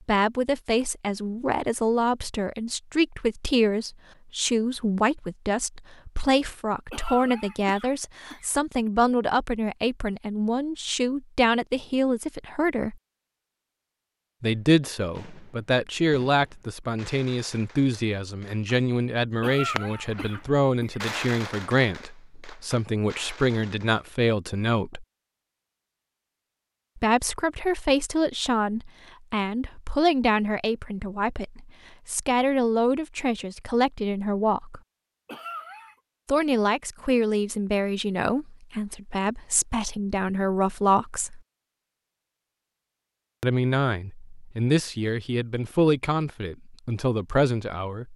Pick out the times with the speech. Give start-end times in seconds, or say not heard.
0.1-12.9, 14.4-25.1, 26.9-34.8, 36.2-41.4, 43.4-48.1.